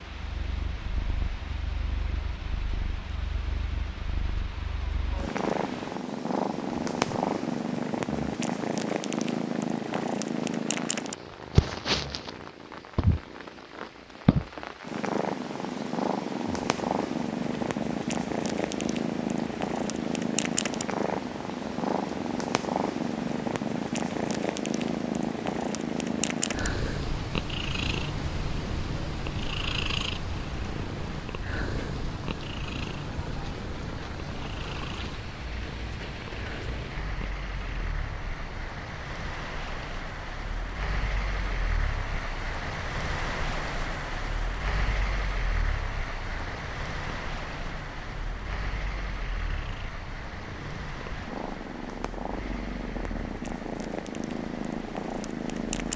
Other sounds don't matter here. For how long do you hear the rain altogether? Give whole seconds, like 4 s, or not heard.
56 s.